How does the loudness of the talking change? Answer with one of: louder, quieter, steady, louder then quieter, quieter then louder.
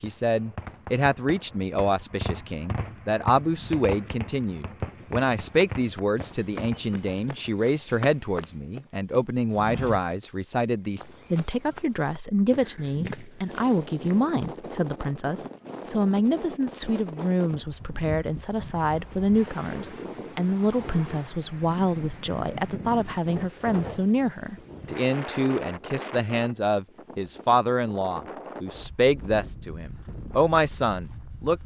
steady.